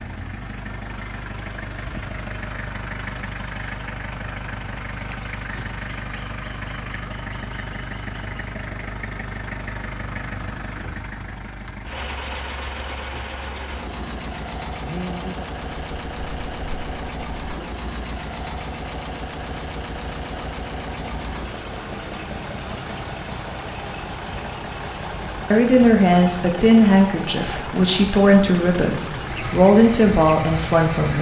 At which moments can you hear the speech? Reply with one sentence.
You can hear the speech from 25.5 to 31.1 s.